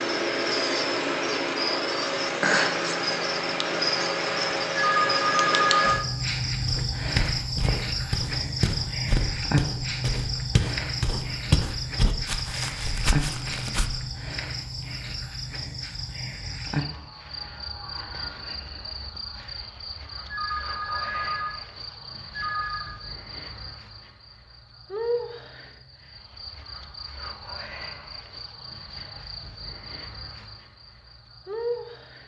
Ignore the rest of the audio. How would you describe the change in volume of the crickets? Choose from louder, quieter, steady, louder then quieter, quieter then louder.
quieter.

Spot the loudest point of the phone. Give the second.
6 s.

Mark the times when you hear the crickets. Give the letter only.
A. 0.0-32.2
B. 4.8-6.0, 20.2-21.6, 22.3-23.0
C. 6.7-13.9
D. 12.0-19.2
A.